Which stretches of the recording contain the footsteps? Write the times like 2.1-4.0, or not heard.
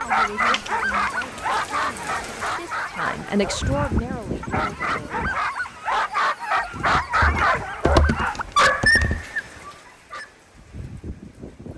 not heard.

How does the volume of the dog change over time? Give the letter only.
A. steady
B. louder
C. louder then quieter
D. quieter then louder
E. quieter
D.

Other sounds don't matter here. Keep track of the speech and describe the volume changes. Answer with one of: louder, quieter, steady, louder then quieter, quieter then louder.
louder then quieter.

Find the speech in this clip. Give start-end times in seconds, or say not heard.
0.0-5.4.